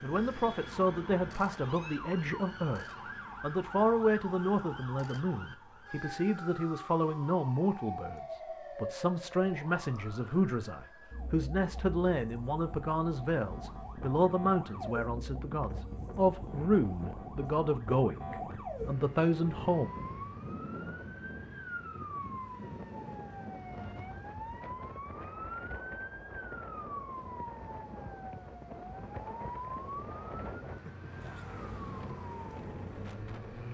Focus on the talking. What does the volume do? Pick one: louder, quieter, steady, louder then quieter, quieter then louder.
steady.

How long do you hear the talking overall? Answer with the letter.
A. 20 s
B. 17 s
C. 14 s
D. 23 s
A.